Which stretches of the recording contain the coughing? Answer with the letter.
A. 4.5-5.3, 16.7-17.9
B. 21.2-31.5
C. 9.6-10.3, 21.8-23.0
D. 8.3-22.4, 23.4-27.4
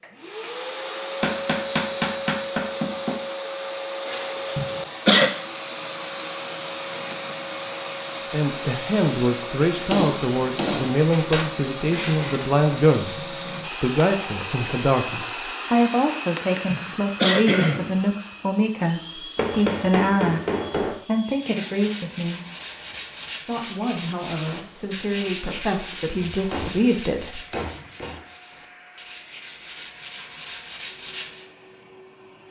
A.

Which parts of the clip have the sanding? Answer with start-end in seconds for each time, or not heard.
21.2-31.5.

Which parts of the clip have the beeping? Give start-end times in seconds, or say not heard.
not heard.